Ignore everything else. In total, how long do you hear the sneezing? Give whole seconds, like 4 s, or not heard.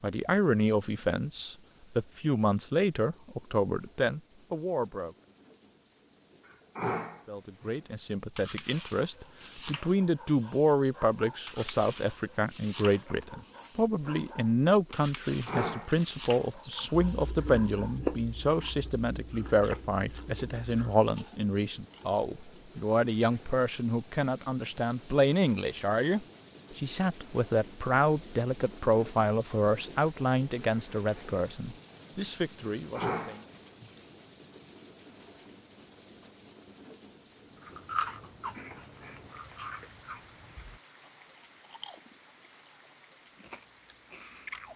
3 s.